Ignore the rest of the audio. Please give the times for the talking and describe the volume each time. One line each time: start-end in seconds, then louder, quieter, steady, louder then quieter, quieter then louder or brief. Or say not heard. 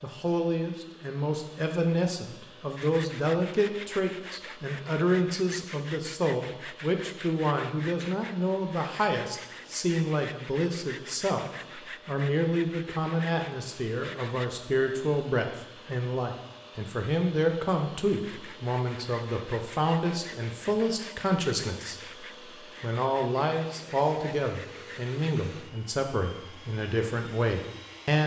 0.0-28.2 steady.